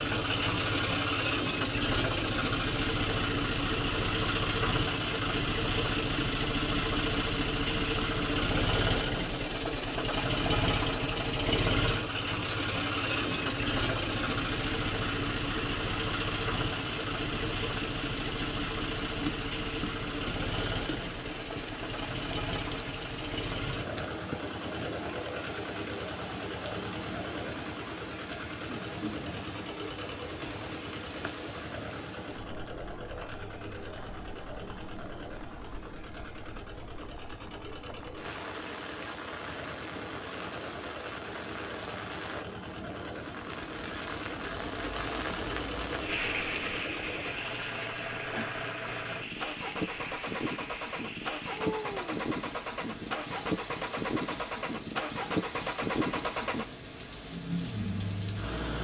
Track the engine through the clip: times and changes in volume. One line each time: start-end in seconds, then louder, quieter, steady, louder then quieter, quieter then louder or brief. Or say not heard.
0.0-58.7 quieter then louder.